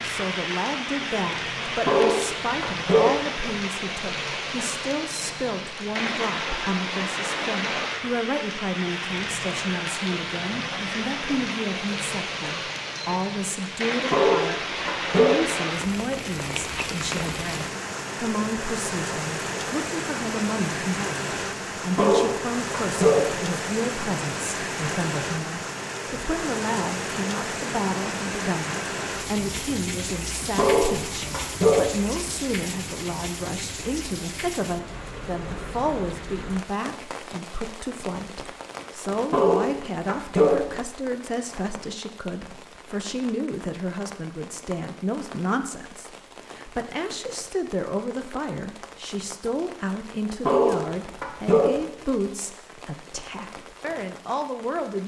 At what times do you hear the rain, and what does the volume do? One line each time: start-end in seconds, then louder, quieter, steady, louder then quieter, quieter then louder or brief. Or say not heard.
0.0-55.0 quieter.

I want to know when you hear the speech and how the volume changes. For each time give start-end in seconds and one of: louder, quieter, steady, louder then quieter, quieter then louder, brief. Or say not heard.
0.0-55.0 steady.